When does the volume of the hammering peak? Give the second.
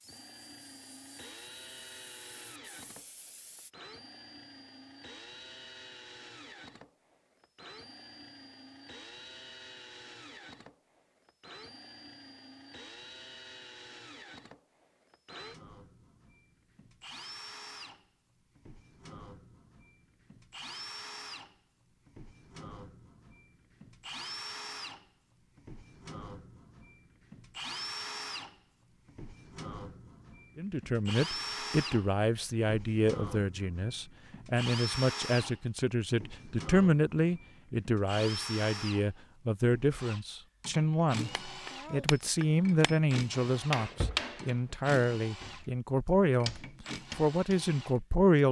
44 s.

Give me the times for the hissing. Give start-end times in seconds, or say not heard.
0.0-3.7.